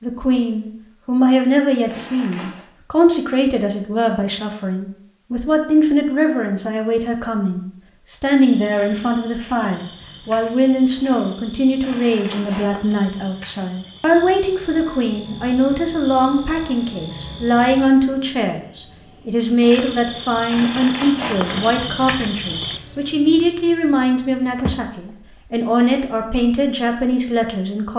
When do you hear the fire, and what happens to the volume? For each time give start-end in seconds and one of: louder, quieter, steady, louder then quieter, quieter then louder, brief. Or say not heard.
not heard.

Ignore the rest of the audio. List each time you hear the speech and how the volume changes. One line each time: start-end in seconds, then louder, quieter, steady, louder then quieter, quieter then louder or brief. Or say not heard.
0.0-27.9 steady.